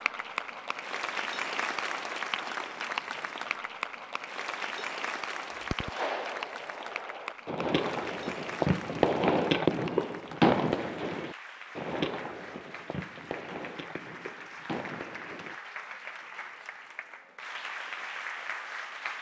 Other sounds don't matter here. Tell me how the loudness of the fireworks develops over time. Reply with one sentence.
The volume of the fireworks goes up, then down.